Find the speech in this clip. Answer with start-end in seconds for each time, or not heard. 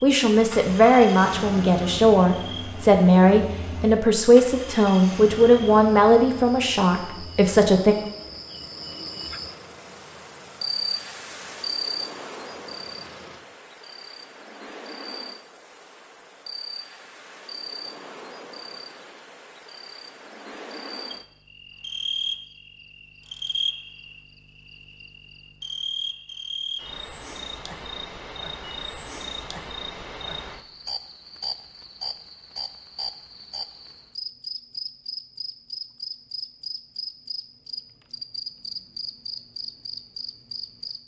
0.0-8.0.